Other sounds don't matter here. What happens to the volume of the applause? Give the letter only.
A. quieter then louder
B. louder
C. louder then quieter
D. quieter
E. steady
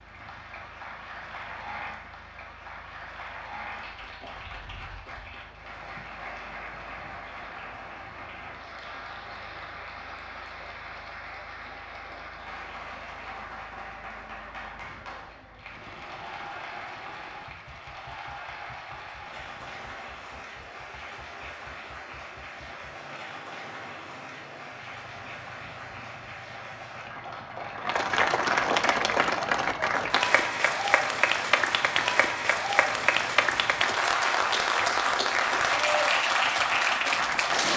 B.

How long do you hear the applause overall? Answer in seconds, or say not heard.
38 s.